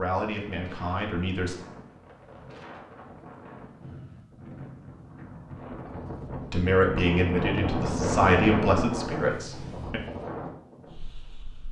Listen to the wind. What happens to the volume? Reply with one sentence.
The volume of the wind goes up, then down.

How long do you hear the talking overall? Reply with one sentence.
You can hear the talking for 5 seconds altogether.